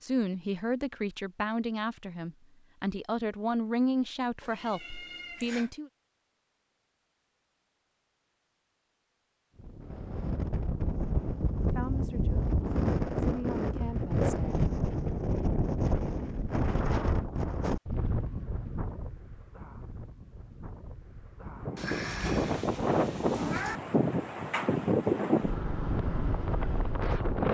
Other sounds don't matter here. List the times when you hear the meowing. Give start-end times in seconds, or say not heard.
4.4-5.7, 21.8-23.8.